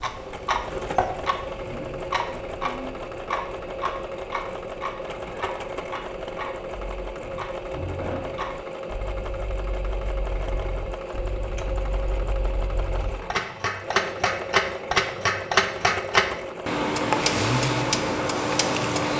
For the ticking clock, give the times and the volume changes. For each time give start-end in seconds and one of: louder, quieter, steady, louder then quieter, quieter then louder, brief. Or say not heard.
0.0-19.1 quieter then louder.